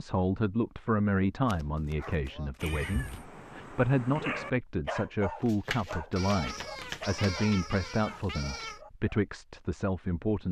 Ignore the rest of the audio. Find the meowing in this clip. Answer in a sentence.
You can hear the meowing from 2.6 to 3.2 s and from 6.2 to 8.8 s.